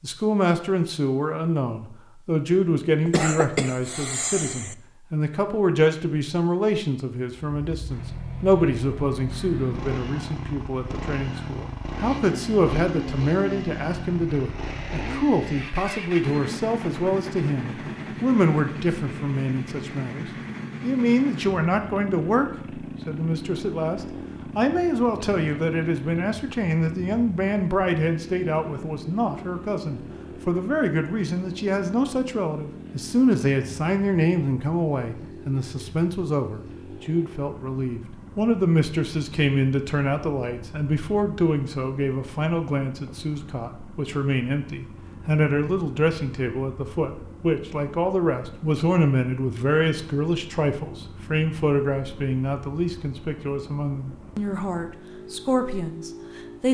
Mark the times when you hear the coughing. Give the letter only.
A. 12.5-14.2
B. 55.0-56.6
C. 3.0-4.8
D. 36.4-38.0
C.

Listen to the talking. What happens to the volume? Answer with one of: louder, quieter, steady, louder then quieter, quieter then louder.
steady.